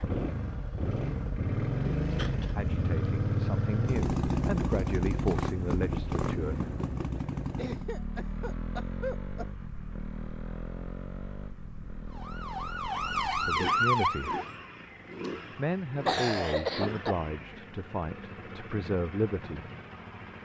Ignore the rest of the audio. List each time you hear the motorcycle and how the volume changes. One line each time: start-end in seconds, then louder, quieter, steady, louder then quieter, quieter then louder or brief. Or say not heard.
0.0-20.4 quieter.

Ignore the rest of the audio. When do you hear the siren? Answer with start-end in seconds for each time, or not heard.
12.1-14.6.